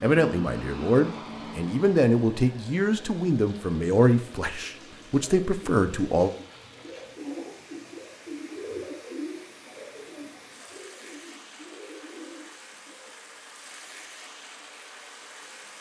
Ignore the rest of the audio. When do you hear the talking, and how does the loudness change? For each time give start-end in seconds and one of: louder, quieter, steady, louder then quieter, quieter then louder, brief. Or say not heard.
0.0-6.3 steady.